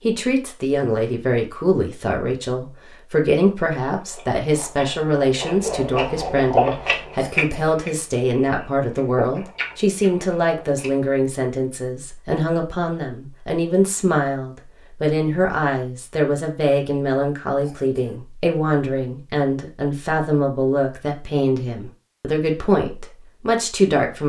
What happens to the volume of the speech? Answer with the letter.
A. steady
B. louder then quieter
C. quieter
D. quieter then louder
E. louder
A.